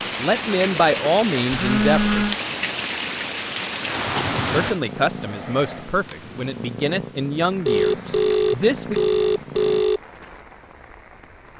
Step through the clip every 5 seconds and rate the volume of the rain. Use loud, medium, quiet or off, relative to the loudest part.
loud, quiet, quiet.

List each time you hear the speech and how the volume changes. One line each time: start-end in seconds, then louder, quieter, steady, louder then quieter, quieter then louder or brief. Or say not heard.
0.1-2.2 brief
4.4-9.0 quieter.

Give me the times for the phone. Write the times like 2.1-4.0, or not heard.
1.5-2.4, 7.7-10.0.